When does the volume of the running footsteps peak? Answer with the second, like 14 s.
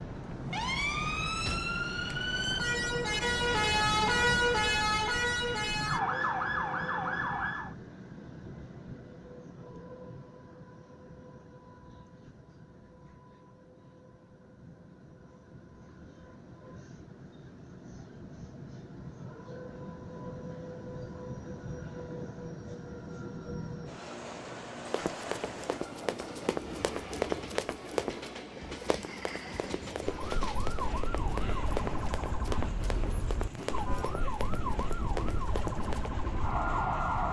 27 s.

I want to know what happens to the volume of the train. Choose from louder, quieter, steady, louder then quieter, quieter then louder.
quieter then louder.